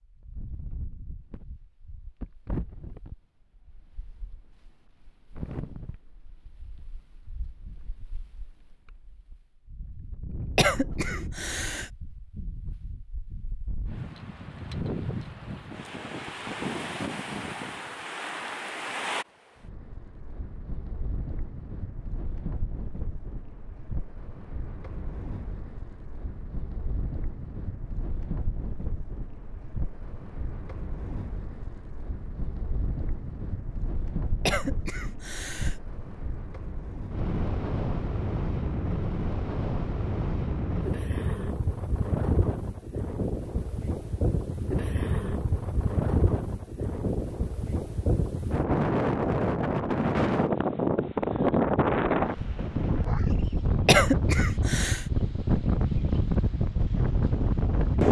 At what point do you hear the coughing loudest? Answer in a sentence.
The loudest moment of the coughing is at 54 seconds.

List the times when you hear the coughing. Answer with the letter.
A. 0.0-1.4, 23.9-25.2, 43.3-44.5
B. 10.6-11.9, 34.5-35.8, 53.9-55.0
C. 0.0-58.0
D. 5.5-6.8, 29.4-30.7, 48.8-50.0
B.